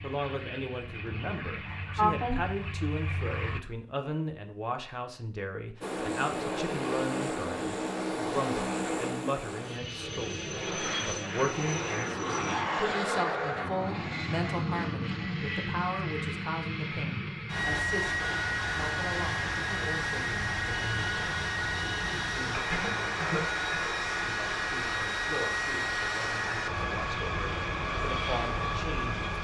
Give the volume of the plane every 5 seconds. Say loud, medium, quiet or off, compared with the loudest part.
medium, loud, loud, loud, loud, loud.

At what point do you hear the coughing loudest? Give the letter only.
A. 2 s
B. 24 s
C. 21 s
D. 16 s
A.